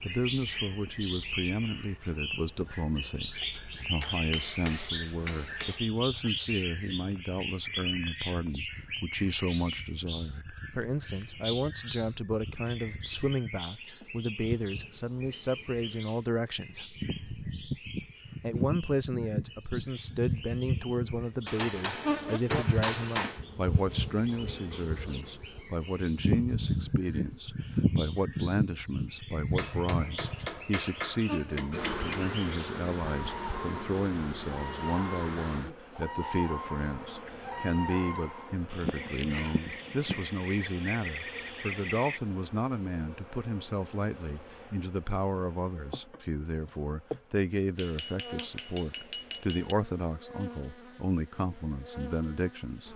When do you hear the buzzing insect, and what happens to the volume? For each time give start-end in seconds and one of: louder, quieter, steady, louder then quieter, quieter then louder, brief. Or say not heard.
0.0-52.9 louder then quieter.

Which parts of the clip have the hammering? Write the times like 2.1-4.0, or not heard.
4.0-5.8, 21.4-23.4, 29.6-32.2, 47.8-49.8.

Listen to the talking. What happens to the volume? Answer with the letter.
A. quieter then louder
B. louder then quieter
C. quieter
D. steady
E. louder
D.